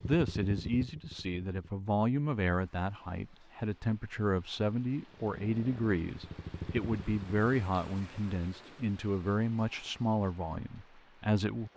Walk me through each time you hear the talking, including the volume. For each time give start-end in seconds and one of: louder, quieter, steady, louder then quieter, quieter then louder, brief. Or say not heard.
0.0-11.7 steady.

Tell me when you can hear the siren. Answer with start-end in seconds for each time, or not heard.
not heard.